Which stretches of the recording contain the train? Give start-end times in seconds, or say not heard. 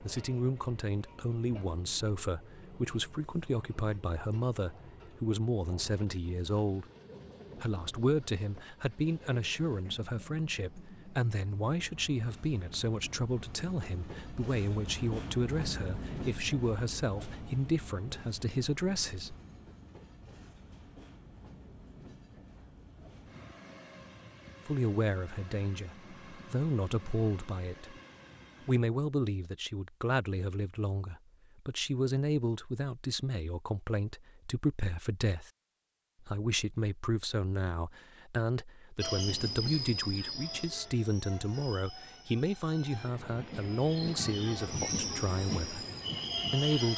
0.0-28.8, 39.0-46.9.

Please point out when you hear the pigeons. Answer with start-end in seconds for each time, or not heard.
not heard.